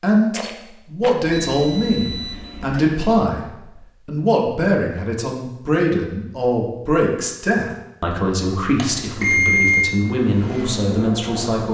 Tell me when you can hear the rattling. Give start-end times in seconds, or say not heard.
0.3-1.1.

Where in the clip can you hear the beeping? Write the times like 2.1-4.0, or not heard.
1.2-3.0, 8.8-9.9.